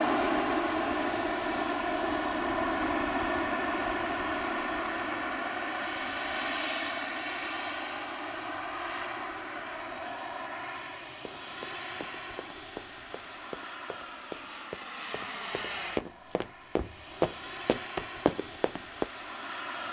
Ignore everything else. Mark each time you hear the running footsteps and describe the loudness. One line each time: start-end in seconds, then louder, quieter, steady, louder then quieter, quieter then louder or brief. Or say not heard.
11.2-19.1 louder.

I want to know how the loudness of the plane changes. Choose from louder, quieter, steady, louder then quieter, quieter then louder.
quieter.